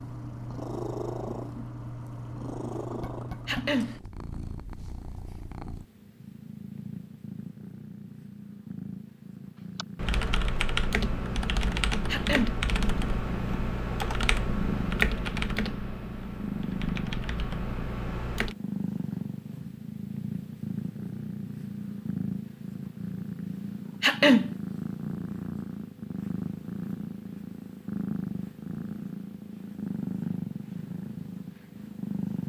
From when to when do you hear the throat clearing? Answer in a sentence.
You can hear the throat clearing from 3.5 to 4.0 s, from 12.1 to 12.6 s and from 24.0 to 24.5 s.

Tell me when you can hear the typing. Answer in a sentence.
The typing can be heard from 9.8 to 18.6 s.